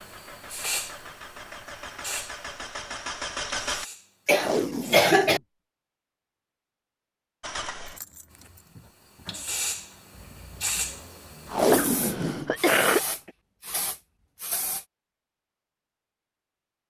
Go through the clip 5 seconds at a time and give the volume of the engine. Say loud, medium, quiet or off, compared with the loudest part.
loud, medium, quiet, off.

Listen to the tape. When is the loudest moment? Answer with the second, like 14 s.
12 s.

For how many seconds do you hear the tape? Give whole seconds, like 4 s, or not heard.
2 s.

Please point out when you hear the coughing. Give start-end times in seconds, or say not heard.
4.2-5.4, 11.7-13.3.